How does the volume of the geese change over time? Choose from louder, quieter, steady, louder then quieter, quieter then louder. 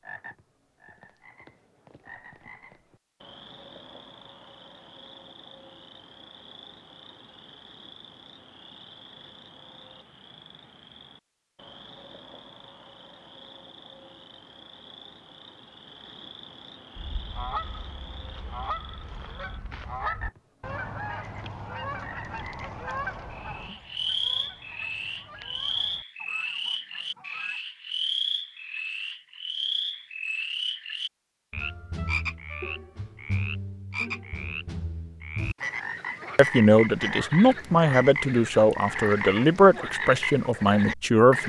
quieter.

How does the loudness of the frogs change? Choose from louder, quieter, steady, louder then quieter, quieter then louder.
louder.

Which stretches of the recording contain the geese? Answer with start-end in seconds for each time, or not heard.
16.9-27.6.